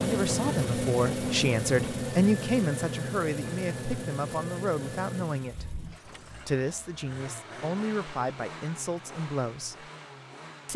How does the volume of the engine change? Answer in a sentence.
The loudness of the engine goes down.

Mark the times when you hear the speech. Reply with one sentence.
The speech can be heard from 0.0 to 9.9 s.